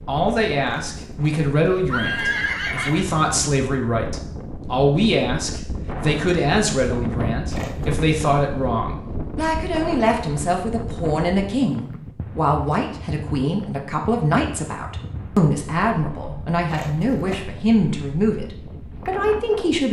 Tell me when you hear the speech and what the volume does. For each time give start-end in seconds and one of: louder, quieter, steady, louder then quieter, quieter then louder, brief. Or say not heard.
0.1-19.8 steady.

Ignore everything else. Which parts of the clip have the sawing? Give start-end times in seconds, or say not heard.
not heard.